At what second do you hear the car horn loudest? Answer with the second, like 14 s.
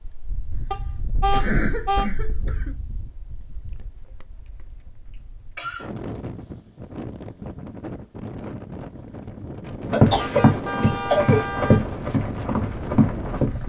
1 s.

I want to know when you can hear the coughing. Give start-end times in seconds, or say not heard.
0.5-2.8, 5.1-5.9, 9.9-11.5.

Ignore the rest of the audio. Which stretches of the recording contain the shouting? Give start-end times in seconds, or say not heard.
not heard.